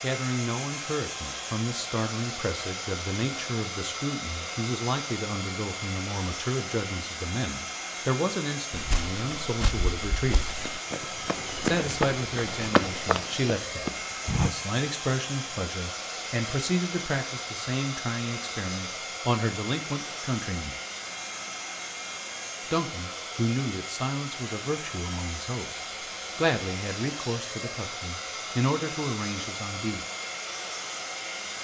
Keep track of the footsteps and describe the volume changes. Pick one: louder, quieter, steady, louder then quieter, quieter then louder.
louder.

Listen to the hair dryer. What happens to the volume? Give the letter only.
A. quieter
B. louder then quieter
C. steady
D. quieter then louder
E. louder
C.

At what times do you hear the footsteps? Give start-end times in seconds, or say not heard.
8.7-14.5.